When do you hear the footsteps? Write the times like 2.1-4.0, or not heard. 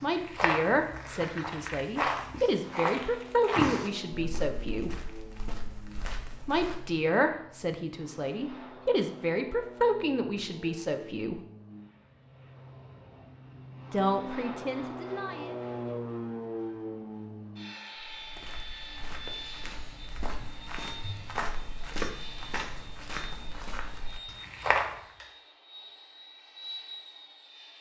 0.0-7.0, 17.9-25.0.